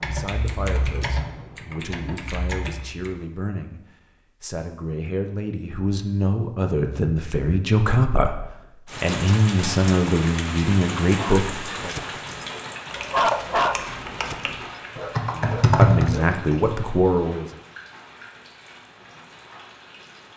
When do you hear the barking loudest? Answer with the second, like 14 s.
13 s.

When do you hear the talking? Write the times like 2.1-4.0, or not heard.
0.0-3.8, 4.4-11.9, 15.3-17.5.